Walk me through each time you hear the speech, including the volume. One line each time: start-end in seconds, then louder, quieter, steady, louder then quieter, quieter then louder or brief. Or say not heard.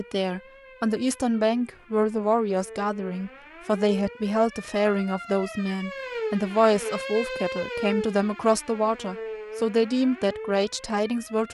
0.0-11.4 steady.